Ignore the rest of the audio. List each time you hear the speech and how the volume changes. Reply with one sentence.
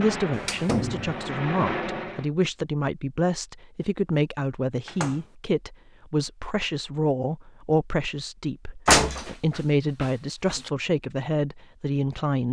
You can hear the speech from 0.0 to 12.4 s, at a steady volume.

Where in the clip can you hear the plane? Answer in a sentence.
You can hear the plane from 0.0 to 2.3 s.